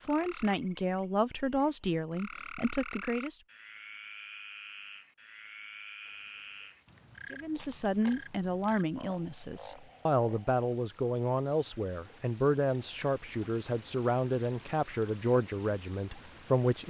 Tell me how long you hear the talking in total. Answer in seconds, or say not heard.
13 s.